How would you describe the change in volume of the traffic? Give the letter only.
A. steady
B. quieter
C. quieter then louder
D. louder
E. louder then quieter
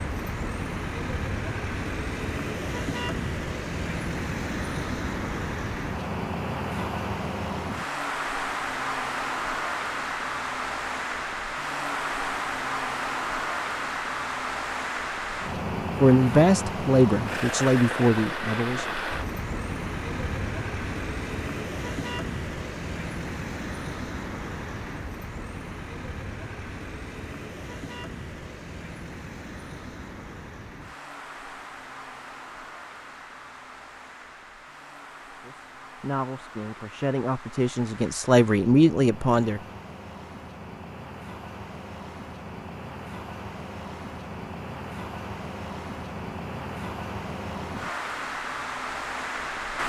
C.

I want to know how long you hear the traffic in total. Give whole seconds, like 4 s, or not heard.
50 s.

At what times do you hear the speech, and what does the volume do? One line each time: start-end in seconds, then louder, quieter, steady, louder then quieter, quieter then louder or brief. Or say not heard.
16.0-18.9 brief
35.4-39.6 louder.